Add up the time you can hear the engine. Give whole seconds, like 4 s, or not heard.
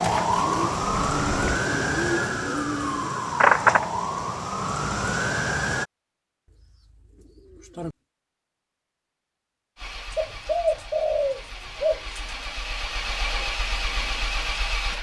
7 s.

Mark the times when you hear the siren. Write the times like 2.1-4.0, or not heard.
0.0-5.8.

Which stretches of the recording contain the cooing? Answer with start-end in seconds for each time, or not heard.
0.4-3.2, 6.5-8.0, 10.1-12.3.